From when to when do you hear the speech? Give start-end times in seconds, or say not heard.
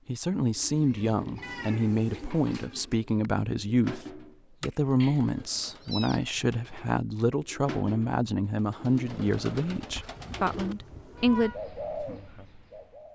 0.1-11.5.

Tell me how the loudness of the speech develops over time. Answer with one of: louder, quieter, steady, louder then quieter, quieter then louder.
steady.